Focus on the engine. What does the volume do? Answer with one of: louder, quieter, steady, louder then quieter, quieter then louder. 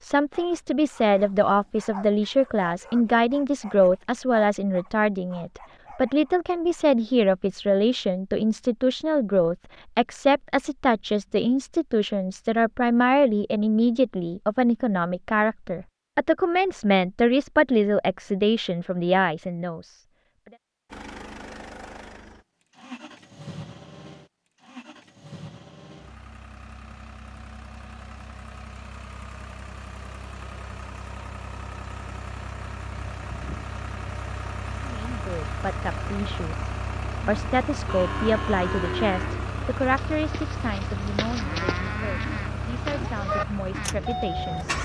louder.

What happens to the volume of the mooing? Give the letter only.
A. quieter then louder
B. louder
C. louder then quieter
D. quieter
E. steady
A.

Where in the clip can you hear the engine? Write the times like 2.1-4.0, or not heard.
20.9-44.7.